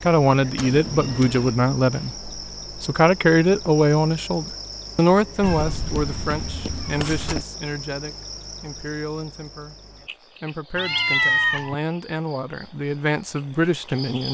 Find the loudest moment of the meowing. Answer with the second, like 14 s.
11 s.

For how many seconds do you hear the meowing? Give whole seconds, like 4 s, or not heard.
4 s.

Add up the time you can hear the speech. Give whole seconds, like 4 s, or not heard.
14 s.